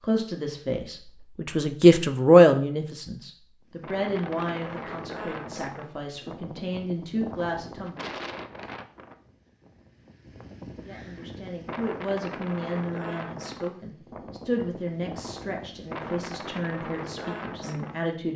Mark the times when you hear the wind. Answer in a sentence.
You can hear the wind from 3.7 to 18.3 s.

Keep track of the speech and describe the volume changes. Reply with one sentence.
The volume of the speech goes down.